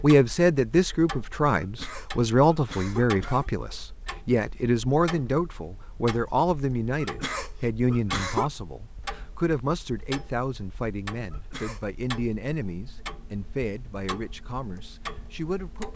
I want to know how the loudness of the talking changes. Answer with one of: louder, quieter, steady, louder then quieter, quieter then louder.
quieter.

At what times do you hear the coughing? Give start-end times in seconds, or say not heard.
1.6-3.5, 7.0-8.5, 11.3-11.8.